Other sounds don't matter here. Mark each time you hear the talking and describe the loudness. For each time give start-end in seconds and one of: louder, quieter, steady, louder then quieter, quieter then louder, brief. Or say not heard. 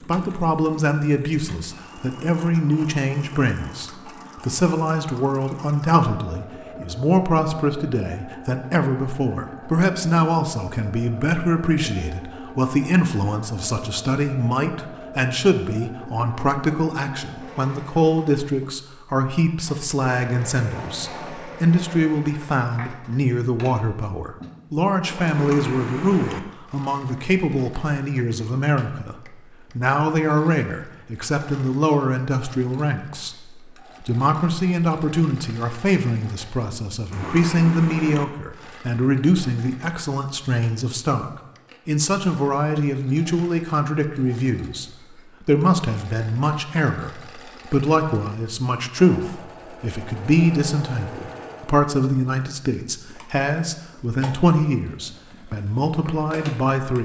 0.1-57.0 steady.